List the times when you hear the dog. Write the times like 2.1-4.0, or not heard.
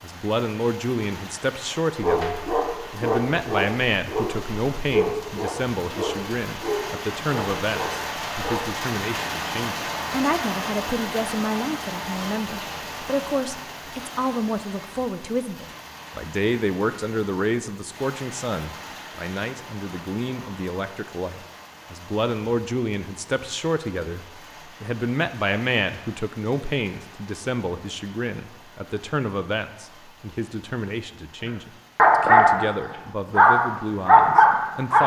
2.0-8.8, 31.4-35.0.